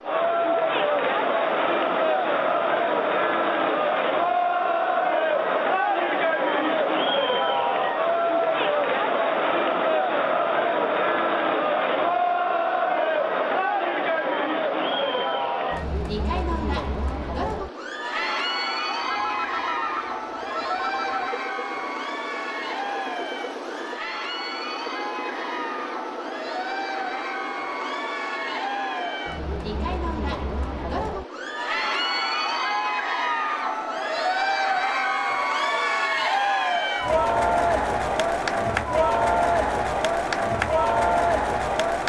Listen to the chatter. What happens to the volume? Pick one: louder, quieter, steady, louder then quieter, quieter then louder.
quieter then louder.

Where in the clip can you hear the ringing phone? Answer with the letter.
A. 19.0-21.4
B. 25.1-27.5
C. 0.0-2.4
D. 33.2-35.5
A.